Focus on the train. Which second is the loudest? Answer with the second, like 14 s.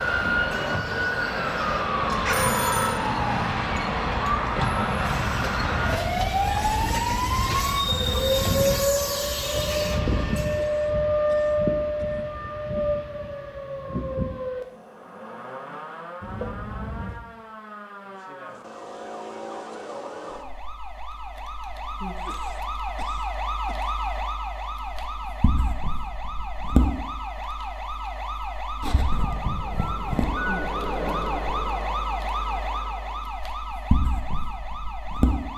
8 s.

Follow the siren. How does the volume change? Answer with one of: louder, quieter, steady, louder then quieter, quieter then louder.
quieter then louder.